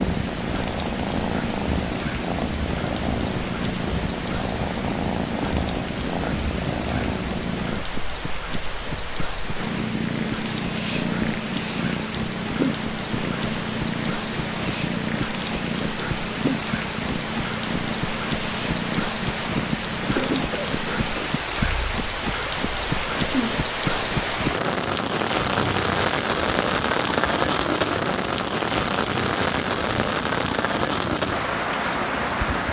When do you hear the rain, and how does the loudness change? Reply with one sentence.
The rain can be heard from 0.0 to 32.6 s, getting louder.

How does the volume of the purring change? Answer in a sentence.
The volume of the purring goes down.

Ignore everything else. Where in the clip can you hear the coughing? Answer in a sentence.
The coughing can be heard from 20.1 to 21.2 s.